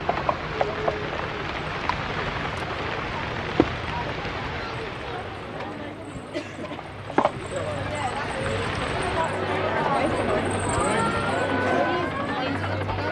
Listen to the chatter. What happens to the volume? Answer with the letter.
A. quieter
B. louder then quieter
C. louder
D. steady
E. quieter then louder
C.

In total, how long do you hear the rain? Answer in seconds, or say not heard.
9 s.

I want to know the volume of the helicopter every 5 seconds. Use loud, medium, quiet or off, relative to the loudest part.
loud, medium, loud.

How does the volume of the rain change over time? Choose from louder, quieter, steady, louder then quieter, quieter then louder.
quieter then louder.